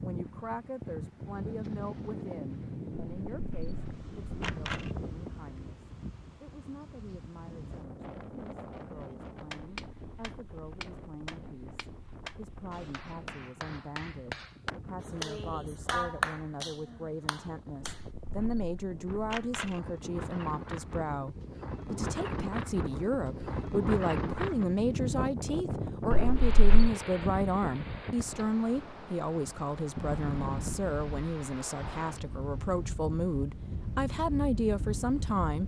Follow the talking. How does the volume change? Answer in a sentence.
The loudness of the talking goes up.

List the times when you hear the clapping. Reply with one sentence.
You can hear the clapping from 9.5 to 18.0 s.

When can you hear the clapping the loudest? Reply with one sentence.
The volume of the clapping peaks at 16 seconds.